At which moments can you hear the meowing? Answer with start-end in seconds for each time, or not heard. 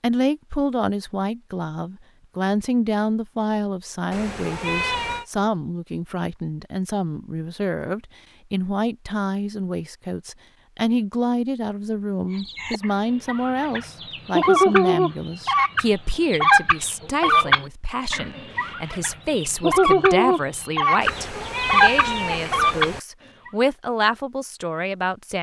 4.1-5.2, 21.0-23.0.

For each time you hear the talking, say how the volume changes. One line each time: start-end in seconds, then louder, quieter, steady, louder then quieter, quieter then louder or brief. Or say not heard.
0.0-25.3 steady.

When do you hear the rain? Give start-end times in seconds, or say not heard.
not heard.